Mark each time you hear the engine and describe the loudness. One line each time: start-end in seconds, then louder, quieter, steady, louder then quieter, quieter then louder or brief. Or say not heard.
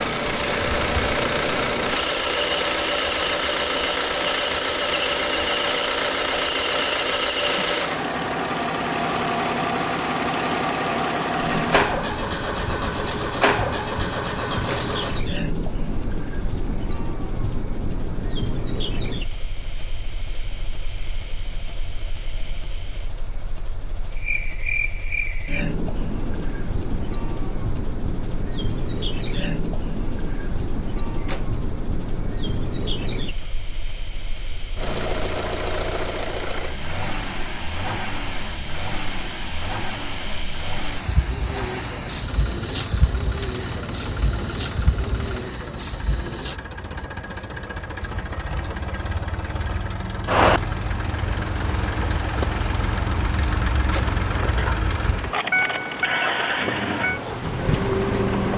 0.0-58.5 quieter then louder.